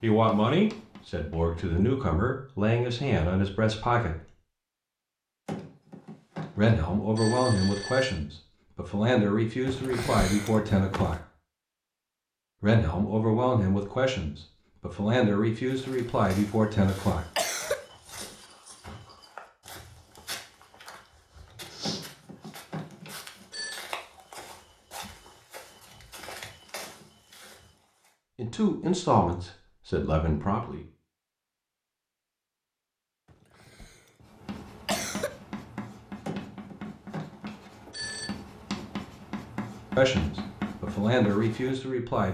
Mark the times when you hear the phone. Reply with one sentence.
The phone can be heard from 5.5 to 8.2 s, from 21.8 to 23.8 s and from 36.2 to 38.3 s.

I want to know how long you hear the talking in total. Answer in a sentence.
The talking can be heard for 18 seconds in total.